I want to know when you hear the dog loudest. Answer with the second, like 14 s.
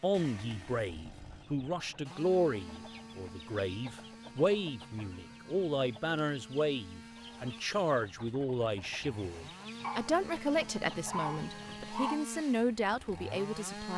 11 s.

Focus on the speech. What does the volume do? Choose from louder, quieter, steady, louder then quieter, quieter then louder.
steady.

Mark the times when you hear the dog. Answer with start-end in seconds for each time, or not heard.
9.8-12.2.